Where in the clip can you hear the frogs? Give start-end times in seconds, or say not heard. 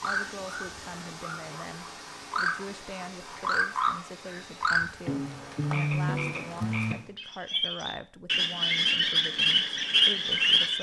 0.0-10.7.